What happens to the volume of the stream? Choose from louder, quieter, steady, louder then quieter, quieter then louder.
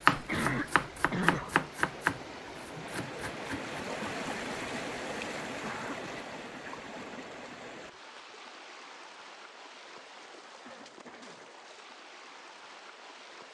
louder then quieter.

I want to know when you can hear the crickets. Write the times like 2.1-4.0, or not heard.
not heard.